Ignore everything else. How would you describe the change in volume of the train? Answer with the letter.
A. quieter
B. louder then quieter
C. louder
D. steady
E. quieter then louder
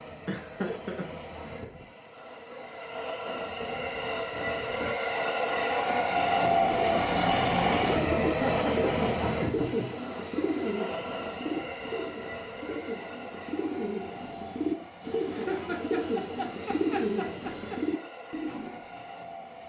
B.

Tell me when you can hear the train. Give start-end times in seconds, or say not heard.
0.0-19.6.